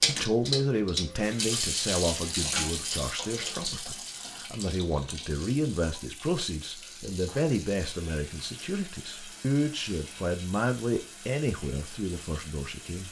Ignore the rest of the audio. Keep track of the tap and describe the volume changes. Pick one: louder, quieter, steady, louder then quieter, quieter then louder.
quieter.